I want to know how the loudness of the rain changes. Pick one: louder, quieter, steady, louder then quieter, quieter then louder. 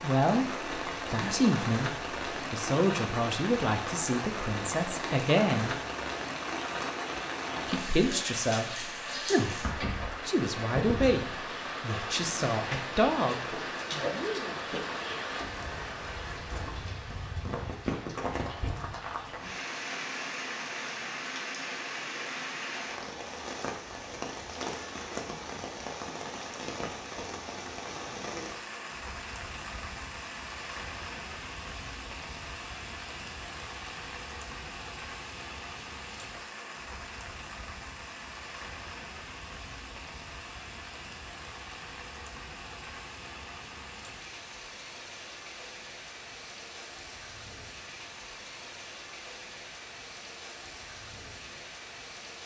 quieter.